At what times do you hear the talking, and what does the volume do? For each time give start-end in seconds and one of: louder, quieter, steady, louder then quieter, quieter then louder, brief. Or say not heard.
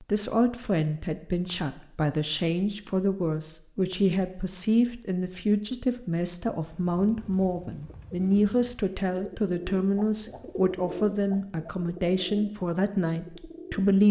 0.0-14.0 steady.